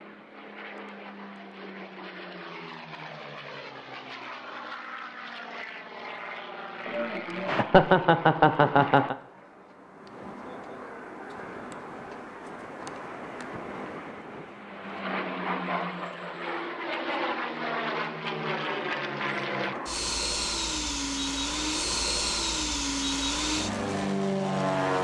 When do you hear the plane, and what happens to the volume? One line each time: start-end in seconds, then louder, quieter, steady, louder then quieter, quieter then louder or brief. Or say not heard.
0.0-24.9 louder.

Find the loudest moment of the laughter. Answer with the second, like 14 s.
8 s.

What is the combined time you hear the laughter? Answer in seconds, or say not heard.
2 s.